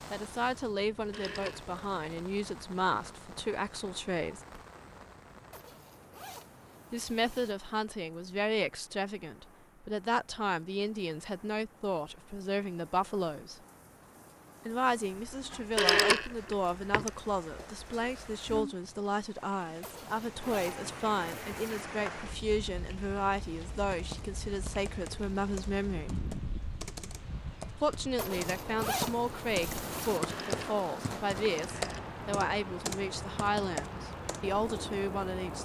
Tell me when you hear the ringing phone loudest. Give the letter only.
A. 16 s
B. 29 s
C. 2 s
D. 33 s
A.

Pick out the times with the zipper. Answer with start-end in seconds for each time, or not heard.
5.5-7.5, 19.8-21.9, 28.1-30.2.